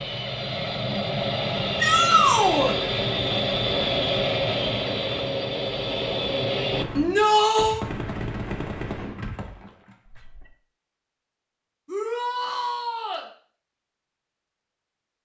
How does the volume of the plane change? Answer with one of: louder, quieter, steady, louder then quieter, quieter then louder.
steady.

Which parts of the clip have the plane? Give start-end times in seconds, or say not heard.
0.0-6.8.